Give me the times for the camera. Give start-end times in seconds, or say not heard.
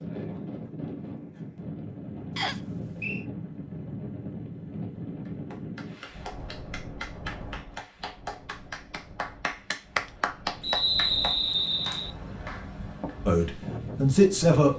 not heard.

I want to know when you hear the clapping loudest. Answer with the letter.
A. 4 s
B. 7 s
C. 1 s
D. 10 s
D.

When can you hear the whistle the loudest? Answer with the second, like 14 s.
11 s.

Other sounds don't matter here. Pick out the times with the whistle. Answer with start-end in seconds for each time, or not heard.
2.4-3.2, 10.6-12.1.